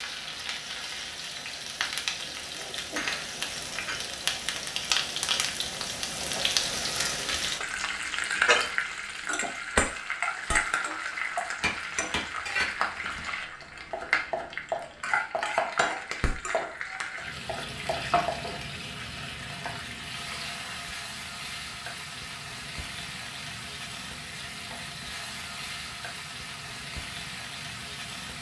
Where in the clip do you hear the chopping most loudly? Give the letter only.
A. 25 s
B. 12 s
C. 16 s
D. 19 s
C.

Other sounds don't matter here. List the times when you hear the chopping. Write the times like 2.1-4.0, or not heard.
11.6-18.4.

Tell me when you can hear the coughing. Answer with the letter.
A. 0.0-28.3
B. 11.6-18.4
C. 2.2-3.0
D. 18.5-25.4
C.